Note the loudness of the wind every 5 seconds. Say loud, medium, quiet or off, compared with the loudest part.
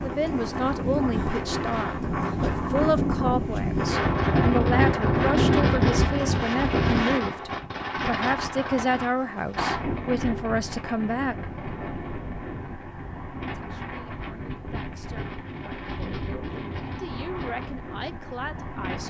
loud, loud, medium, medium.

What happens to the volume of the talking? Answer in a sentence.
The loudness of the talking goes down.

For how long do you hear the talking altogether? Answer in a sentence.
The talking can be heard for 17 seconds in total.